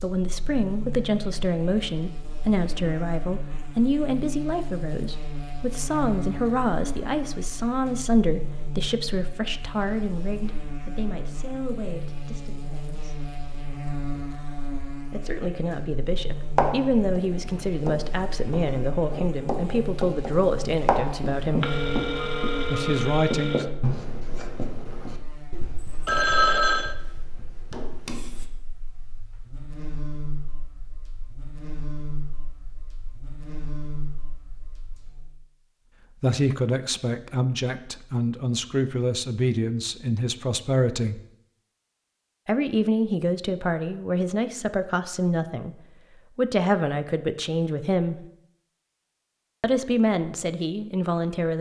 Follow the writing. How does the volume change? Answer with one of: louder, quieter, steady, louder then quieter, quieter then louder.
louder then quieter.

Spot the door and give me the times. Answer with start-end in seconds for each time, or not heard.
not heard.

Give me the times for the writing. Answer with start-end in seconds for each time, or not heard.
16.6-28.4.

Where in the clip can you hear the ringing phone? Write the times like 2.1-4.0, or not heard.
21.6-23.7, 26.1-26.9.